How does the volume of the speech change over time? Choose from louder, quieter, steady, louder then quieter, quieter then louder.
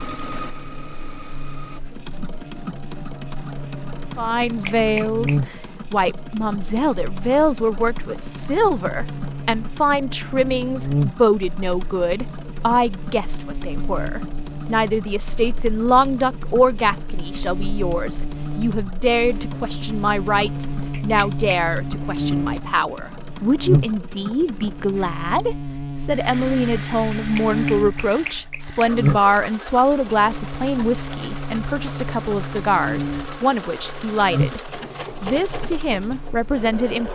steady.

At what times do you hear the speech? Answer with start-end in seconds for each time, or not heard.
4.2-37.0.